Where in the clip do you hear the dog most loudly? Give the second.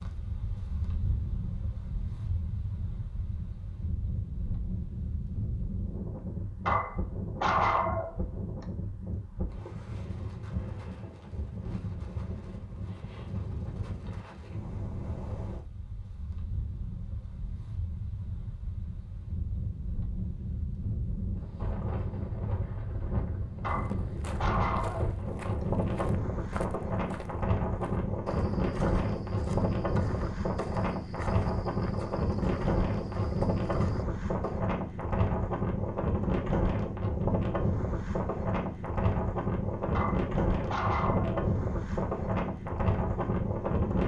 8 s.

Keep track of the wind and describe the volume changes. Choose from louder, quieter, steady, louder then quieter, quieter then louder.
louder.